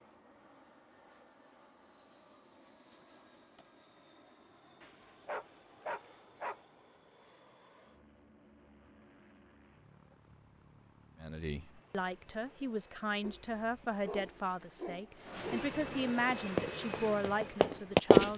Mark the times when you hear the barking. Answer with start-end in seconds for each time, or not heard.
4.8-6.6, 13.2-15.8.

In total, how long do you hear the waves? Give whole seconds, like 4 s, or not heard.
not heard.